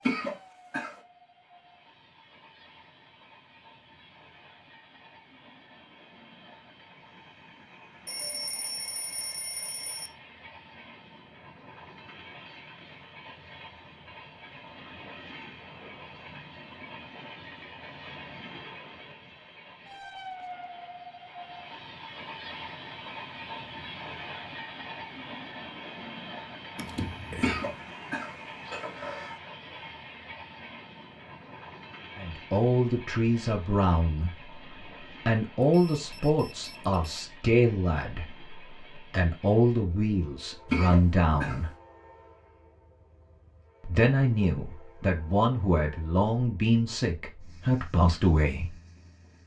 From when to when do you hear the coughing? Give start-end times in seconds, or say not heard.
0.1-0.9, 27.4-29.4, 40.7-41.6.